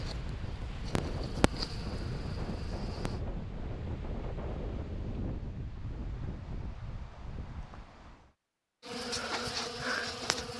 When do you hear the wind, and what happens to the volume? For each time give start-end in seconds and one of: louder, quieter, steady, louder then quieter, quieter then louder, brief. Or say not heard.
0.0-8.3 quieter.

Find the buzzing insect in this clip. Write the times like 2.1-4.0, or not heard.
0.0-3.2, 8.8-10.5.